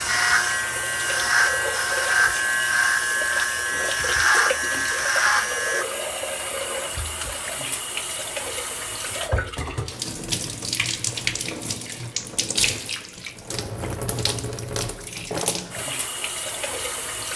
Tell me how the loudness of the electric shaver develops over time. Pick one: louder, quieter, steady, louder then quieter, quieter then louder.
steady.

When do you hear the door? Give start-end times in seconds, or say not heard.
not heard.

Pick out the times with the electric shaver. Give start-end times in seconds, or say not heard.
0.0-5.8.